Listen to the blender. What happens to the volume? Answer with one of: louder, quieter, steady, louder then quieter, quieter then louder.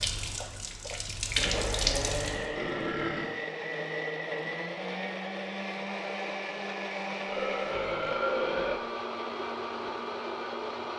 steady.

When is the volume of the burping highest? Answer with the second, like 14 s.
8 s.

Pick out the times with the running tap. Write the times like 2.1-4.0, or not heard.
0.0-2.5.